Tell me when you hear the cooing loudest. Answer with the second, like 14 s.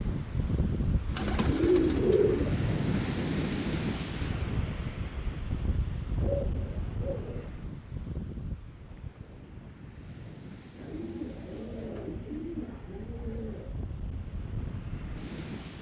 2 s.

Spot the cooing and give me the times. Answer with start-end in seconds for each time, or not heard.
1.1-2.6, 6.2-7.5, 10.8-13.8.